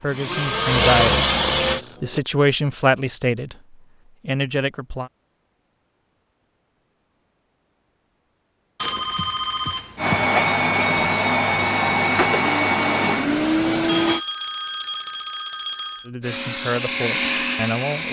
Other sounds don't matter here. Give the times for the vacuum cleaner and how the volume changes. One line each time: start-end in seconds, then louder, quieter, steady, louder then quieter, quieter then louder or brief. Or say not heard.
0.0-1.8 brief
9.9-14.2 steady
16.2-18.0 brief.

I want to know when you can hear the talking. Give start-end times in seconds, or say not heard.
0.0-1.4, 2.0-5.1, 16.1-18.0.